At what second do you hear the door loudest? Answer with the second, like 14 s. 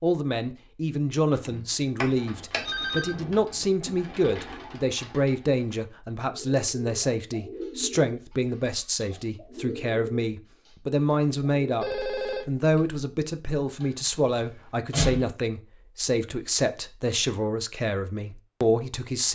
15 s.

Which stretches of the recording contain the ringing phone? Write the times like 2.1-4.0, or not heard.
2.5-3.1, 11.8-13.1.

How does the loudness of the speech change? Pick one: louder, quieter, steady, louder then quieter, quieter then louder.
steady.